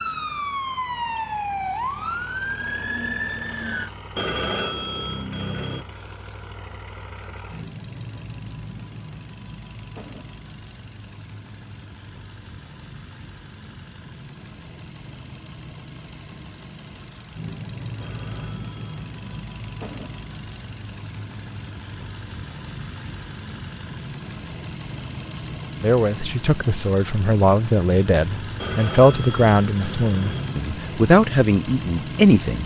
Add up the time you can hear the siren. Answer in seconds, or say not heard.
4 s.